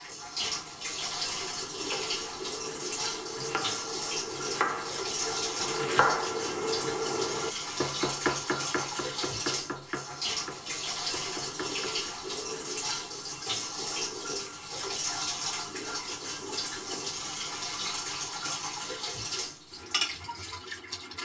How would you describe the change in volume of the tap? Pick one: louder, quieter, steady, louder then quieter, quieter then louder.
steady.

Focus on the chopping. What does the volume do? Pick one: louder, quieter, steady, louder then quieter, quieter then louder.
louder then quieter.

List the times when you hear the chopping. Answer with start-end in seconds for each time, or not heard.
1.8-12.2.